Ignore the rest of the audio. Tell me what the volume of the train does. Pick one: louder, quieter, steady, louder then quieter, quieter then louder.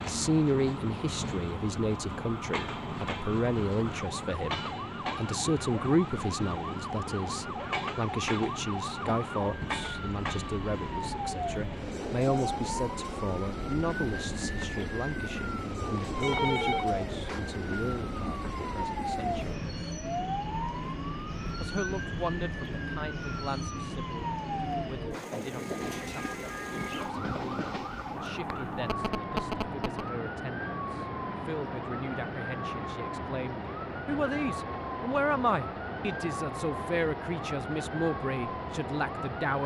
steady.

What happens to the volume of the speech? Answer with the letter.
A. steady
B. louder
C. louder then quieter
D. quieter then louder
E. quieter
D.